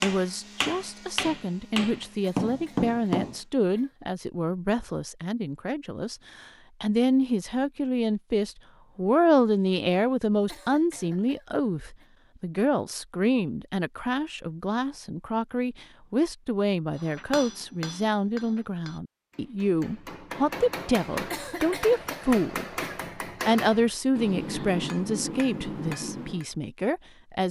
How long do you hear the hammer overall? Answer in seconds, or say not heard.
13 s.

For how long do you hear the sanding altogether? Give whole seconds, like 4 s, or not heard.
not heard.